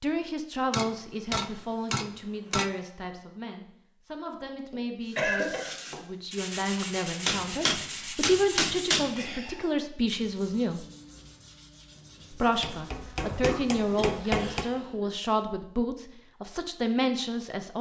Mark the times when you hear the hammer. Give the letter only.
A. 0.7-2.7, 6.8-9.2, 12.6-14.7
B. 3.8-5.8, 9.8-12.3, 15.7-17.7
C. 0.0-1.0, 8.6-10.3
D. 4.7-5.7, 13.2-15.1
A.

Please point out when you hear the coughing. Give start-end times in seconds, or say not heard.
4.7-5.7, 13.2-15.1.